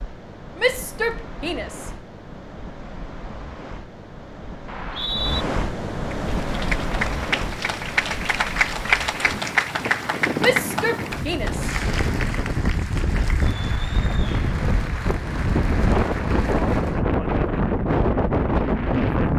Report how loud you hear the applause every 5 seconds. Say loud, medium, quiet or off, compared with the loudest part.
off, loud, medium, medium.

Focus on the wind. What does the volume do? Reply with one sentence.
The loudness of the wind goes up.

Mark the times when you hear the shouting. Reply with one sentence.
You can hear the shouting from 0.6 to 1.9 s and from 10.4 to 11.7 s.